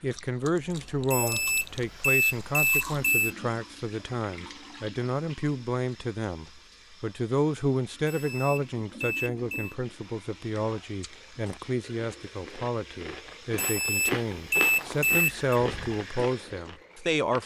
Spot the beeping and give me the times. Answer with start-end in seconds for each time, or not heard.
1.1-3.3, 8.1-9.8, 13.6-15.6.